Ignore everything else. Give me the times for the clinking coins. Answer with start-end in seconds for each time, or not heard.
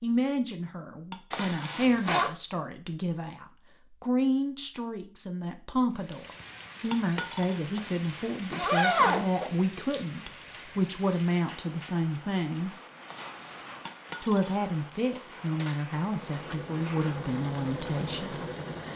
1.1-1.8, 6.9-7.6, 13.8-14.6.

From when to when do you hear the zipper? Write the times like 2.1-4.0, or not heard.
1.3-2.3, 7.8-9.5, 13.1-13.9.